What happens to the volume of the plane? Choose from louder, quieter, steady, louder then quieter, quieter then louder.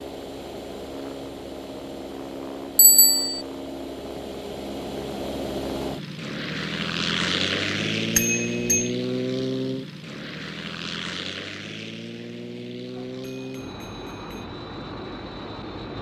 louder then quieter.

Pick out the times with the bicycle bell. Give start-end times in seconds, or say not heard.
2.8-3.4, 8.2-8.9, 12.9-14.4.